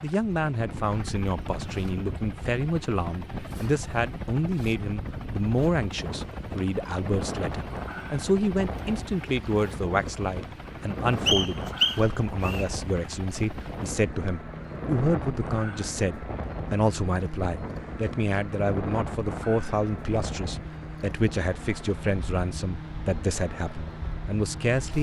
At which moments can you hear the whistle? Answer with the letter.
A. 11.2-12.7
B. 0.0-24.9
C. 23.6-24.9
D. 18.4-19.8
A.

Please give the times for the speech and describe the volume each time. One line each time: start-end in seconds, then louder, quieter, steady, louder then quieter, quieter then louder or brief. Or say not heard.
0.0-24.9 steady.